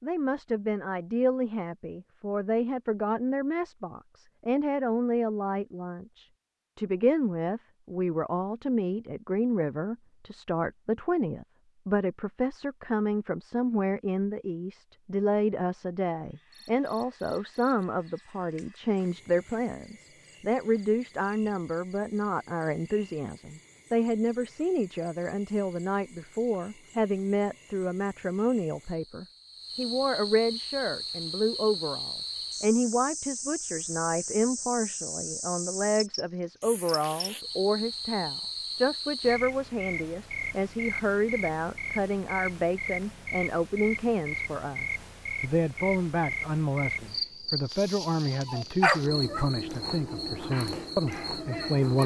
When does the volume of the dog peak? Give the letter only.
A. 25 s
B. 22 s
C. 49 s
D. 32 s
C.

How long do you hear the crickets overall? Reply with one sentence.
You can hear the crickets for 36 seconds altogether.